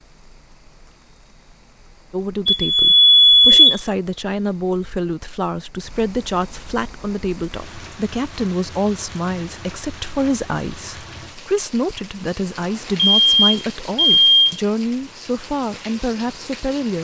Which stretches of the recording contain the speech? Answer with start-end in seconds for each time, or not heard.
2.1-17.0.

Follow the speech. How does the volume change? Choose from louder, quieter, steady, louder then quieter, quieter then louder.
steady.